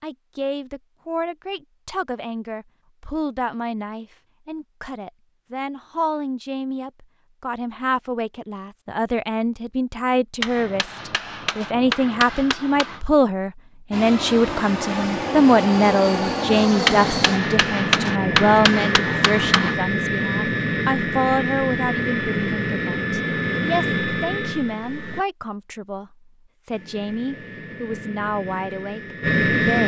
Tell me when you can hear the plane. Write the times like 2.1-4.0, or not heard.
13.9-25.2, 26.7-29.8.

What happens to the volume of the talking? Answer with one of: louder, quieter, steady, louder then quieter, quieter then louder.
louder then quieter.